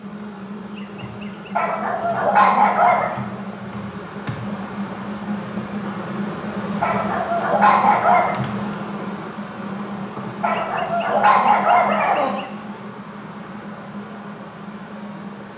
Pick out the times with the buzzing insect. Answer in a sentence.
You can hear the buzzing insect from 0.0 to 15.5 s.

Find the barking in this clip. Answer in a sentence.
The barking can be heard from 1.6 to 3.1 s, from 6.8 to 8.4 s and from 10.4 to 12.3 s.